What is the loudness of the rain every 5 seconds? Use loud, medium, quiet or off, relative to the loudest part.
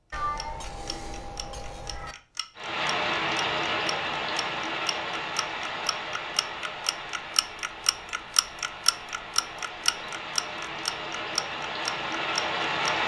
loud, medium, loud.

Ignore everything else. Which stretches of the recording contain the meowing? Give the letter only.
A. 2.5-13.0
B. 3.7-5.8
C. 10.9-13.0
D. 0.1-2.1
D.